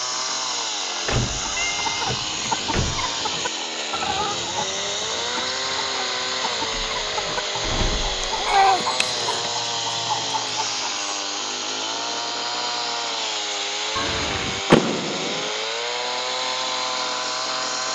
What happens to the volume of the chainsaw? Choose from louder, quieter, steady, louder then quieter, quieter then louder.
steady.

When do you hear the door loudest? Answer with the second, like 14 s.
15 s.